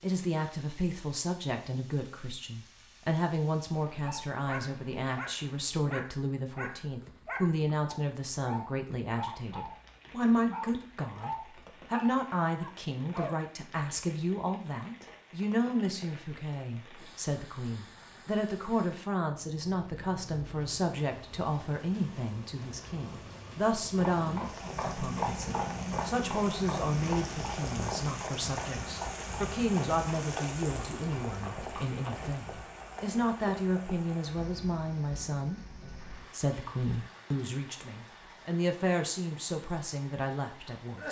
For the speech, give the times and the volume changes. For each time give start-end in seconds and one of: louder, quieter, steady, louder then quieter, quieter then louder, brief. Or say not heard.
0.0-41.0 steady.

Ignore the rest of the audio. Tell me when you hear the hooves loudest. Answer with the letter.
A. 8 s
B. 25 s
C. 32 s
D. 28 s
B.